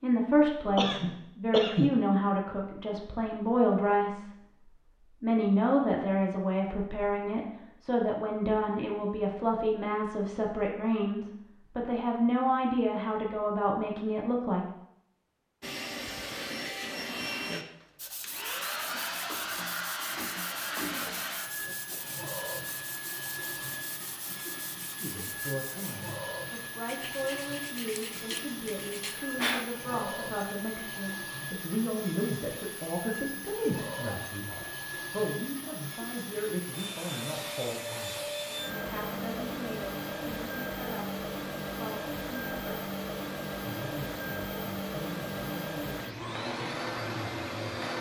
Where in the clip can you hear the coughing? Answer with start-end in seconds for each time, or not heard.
0.8-2.0.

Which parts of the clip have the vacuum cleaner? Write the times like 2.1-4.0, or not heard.
15.6-47.9.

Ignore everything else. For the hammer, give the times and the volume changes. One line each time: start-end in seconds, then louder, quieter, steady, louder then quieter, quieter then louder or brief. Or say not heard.
not heard.